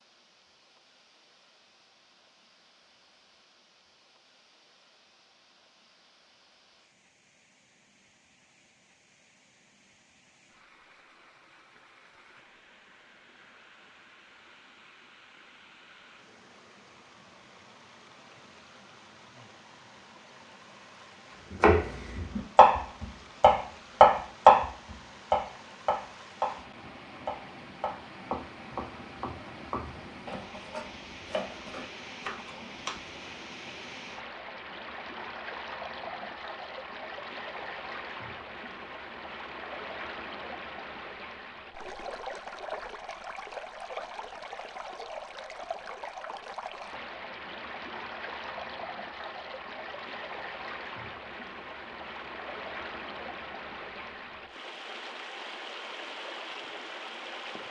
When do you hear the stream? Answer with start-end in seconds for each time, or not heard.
0.0-57.6.